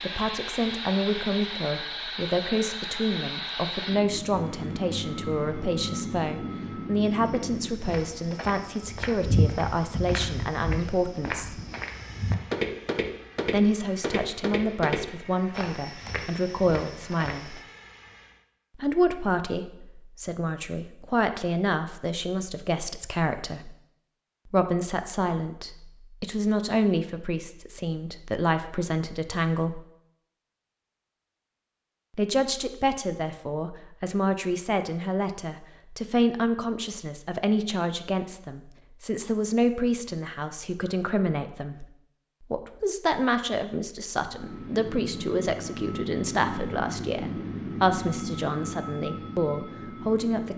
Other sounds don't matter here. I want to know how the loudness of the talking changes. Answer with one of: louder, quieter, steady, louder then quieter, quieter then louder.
steady.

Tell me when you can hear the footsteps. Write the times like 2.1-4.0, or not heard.
7.0-17.6.